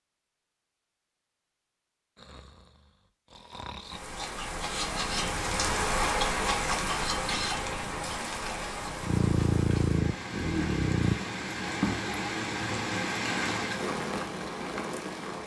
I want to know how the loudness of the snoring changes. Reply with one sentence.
The volume of the snoring goes up.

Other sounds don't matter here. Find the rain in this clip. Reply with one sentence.
You can hear the rain from 3.8 to 15.4 s.